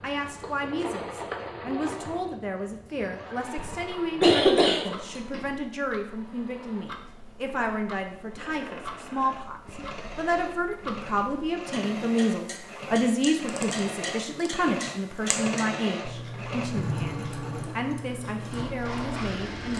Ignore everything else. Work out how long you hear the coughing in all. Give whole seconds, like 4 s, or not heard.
2 s.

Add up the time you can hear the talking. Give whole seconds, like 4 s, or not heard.
20 s.